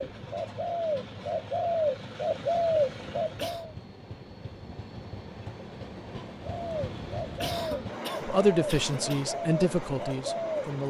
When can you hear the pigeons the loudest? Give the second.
3 s.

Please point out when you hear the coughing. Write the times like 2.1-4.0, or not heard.
3.2-3.6, 7.2-9.2.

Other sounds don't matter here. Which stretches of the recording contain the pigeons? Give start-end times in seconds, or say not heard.
0.0-3.7, 6.4-10.8.